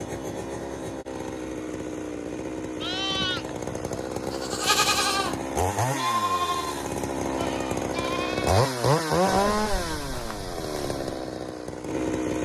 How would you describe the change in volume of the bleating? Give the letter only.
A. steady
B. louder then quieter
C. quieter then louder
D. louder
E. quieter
B.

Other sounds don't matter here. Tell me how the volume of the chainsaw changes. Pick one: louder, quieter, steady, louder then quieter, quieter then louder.
louder then quieter.